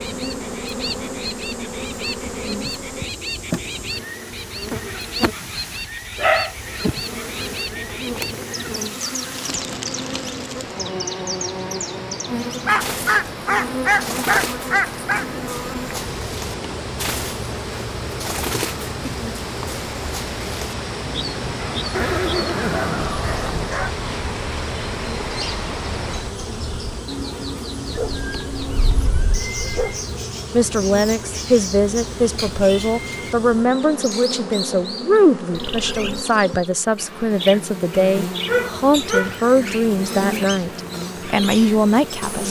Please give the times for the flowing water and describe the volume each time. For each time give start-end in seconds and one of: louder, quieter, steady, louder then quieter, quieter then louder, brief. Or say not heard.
0.0-26.4 louder.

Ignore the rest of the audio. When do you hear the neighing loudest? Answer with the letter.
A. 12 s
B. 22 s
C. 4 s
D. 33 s
B.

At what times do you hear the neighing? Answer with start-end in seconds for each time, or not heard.
21.9-23.8.